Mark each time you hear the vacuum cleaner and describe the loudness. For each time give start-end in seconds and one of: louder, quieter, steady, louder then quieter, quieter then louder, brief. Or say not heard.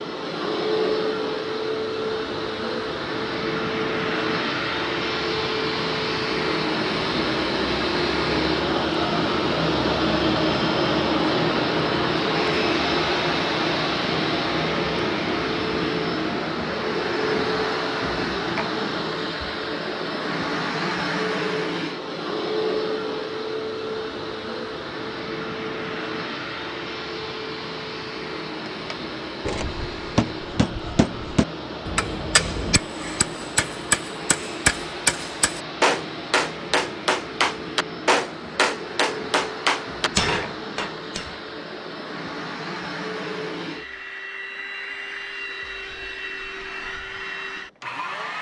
0.0-48.3 quieter.